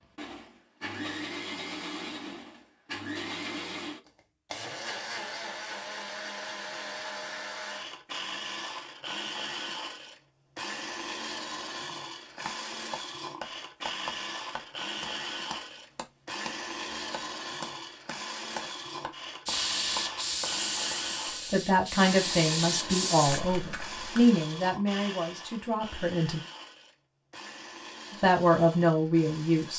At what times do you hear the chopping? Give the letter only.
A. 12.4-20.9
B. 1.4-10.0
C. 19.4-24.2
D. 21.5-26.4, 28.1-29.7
A.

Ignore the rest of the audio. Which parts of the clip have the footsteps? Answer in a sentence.
The footsteps can't be heard in this clip.